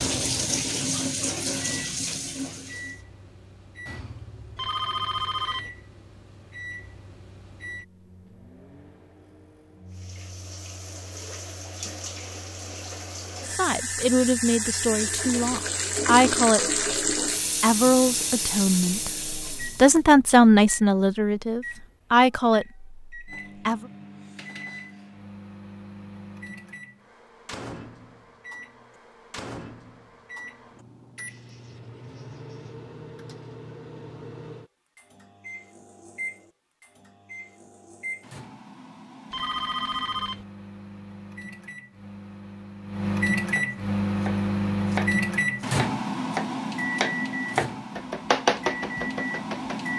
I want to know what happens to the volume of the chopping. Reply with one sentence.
The volume of the chopping goes down, then up.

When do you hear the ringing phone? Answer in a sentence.
You can hear the ringing phone from 4.5 to 5.7 s and from 39.3 to 40.5 s.